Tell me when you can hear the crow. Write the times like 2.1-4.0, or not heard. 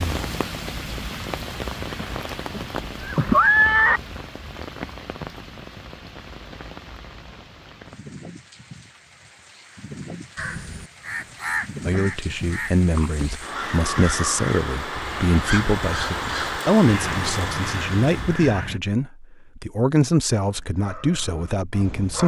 10.3-18.8.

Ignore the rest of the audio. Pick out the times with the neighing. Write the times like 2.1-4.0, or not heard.
2.0-4.0.